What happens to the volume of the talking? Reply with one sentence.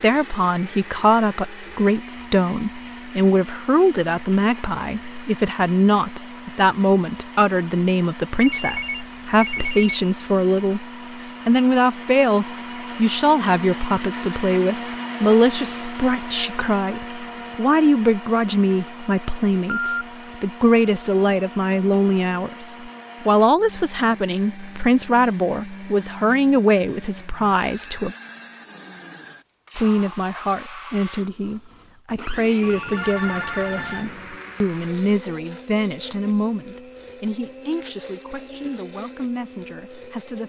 The volume of the talking goes down.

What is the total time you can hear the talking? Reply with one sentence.
The talking can be heard for 38 seconds in total.